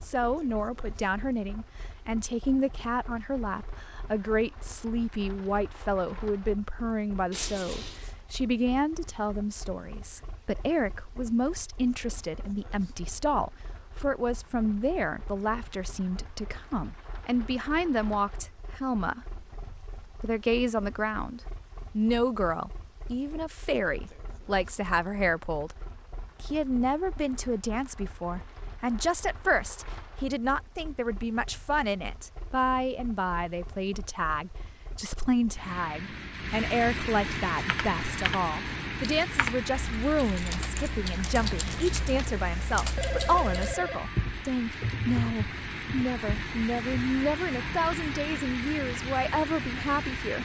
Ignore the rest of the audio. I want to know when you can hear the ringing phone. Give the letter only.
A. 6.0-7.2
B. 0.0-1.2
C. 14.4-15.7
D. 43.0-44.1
D.